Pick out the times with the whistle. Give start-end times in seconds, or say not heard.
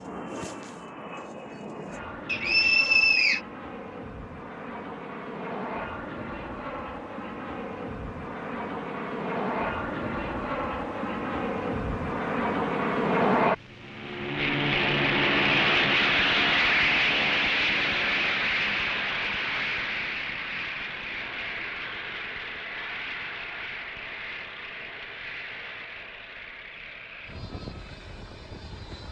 2.2-3.4.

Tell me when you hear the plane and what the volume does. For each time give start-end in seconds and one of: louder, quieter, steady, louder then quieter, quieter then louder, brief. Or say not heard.
0.0-29.0 louder then quieter.